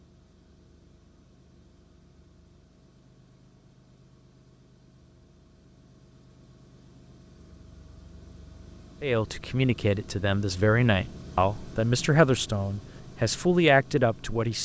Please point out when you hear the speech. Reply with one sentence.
The speech can be heard from 9.0 to 14.5 s.